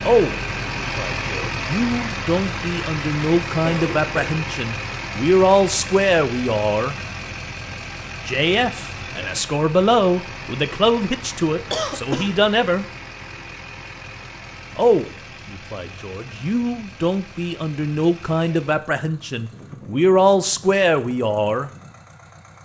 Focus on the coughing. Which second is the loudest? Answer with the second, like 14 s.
12 s.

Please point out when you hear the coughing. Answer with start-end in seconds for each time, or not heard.
3.6-4.5, 11.7-12.3.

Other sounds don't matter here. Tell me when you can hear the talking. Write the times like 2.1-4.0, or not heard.
0.0-7.0, 8.2-12.8, 14.8-21.7.